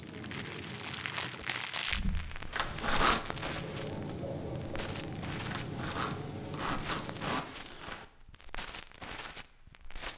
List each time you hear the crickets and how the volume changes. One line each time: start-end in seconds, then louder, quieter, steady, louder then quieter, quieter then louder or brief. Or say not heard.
0.0-7.3 quieter then louder.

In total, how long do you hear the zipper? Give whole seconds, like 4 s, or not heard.
3 s.